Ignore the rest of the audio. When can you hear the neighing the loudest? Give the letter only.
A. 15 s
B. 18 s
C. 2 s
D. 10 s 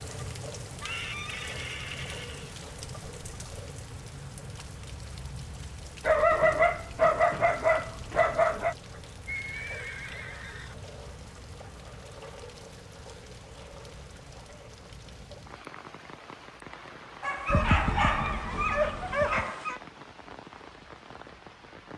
B.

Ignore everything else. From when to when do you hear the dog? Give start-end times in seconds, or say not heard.
6.0-8.8, 17.2-19.8.